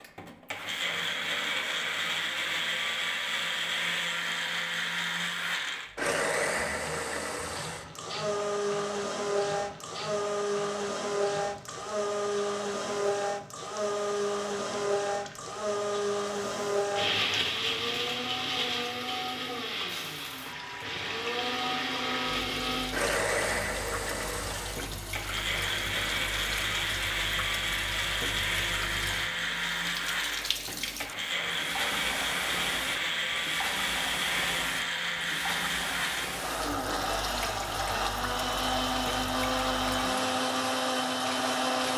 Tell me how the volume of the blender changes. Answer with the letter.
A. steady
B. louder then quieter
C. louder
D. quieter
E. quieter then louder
A.